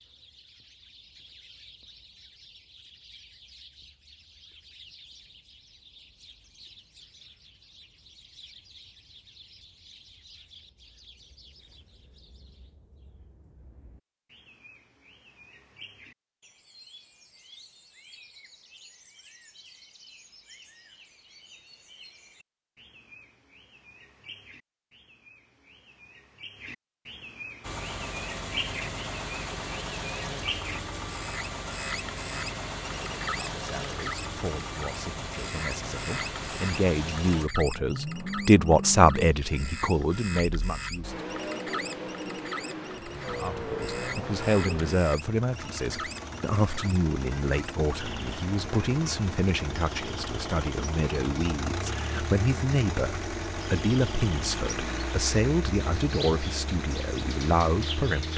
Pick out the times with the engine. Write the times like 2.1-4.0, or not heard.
27.6-58.3.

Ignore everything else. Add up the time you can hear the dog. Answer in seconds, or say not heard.
not heard.